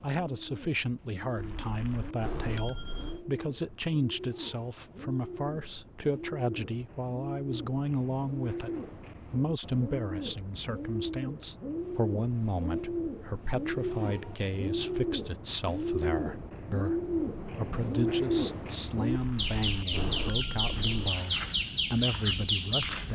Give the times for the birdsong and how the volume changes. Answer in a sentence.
The birdsong can be heard from 0.0 to 23.1 s, getting louder.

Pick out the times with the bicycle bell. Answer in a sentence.
The bicycle bell can be heard from 1.4 to 3.2 s and from 19.1 to 21.1 s.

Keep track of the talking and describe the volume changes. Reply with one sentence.
The loudness of the talking stays about the same.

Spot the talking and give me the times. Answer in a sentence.
The talking can be heard from 0.0 to 23.1 s.